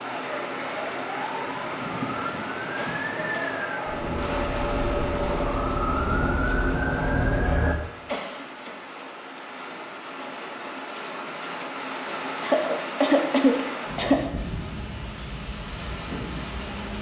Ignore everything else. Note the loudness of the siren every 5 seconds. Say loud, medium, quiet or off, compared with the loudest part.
medium, loud, off, off.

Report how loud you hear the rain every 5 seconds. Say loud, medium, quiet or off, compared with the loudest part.
loud, medium, loud, loud.